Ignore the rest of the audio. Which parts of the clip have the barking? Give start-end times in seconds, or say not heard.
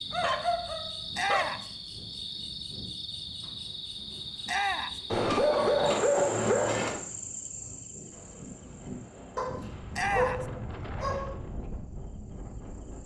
0.1-1.6, 5.1-7.0, 9.3-11.3.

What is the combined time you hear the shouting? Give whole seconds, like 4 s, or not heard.
2 s.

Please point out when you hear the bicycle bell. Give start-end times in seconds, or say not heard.
not heard.